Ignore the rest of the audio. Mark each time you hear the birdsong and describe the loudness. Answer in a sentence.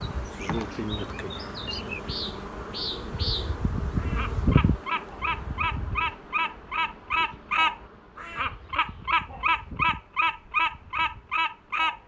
The birdsong can be heard from 0.1 to 12.0 s, getting louder.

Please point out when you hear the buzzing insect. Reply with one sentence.
The buzzing insect can be heard from 0.0 to 12.0 s.